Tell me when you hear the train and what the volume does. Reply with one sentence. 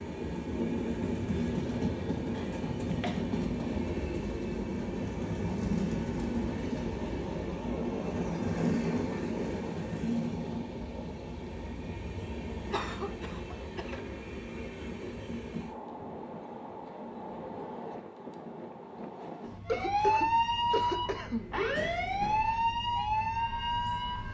You can hear the train from 0.0 to 24.2 s, getting quieter.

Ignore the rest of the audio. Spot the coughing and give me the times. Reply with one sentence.
The coughing can be heard from 2.3 to 3.2 s, from 12.7 to 14.2 s and from 19.6 to 21.4 s.